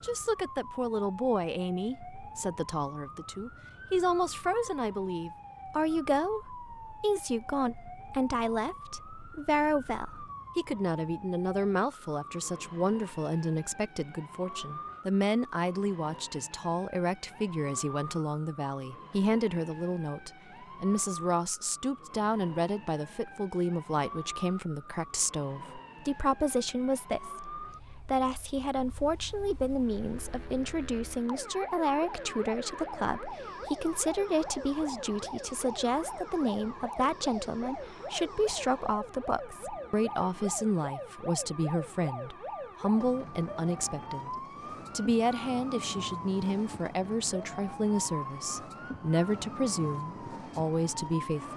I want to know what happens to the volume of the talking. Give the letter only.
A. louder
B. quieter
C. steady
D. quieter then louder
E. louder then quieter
C.